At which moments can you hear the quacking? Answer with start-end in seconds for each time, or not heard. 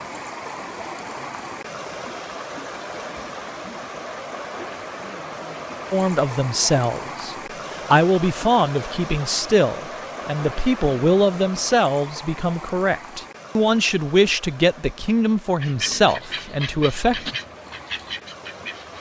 15.6-18.9.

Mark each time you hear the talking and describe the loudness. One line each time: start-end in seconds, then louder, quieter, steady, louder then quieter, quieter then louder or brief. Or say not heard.
5.9-17.3 steady.